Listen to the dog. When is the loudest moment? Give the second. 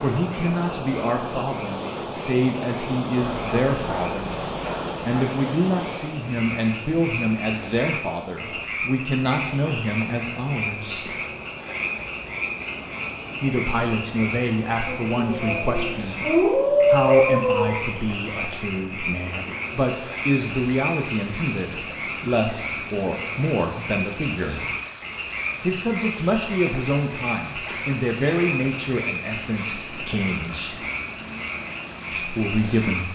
17 s.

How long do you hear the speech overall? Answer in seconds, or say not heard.
28 s.